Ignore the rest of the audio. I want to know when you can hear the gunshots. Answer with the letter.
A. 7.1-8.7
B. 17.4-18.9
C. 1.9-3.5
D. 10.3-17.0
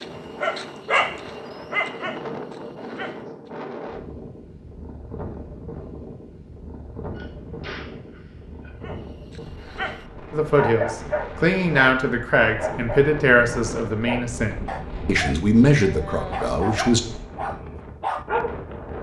A.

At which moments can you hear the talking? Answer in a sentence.
The talking can be heard from 10.3 to 17.0 s.